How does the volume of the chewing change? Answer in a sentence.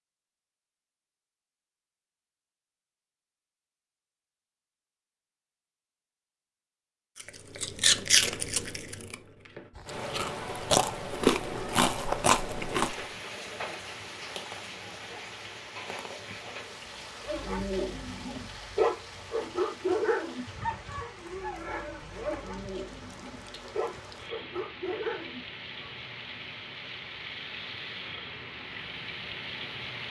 The loudness of the chewing goes down, then up.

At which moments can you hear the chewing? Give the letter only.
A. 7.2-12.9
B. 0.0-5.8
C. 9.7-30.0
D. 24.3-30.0
A.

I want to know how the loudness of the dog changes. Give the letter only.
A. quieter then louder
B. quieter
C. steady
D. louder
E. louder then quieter
B.